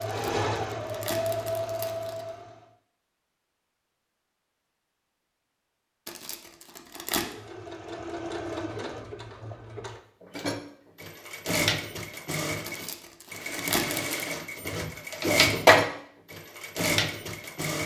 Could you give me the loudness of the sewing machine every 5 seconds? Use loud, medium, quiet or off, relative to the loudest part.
medium, quiet, medium, loud.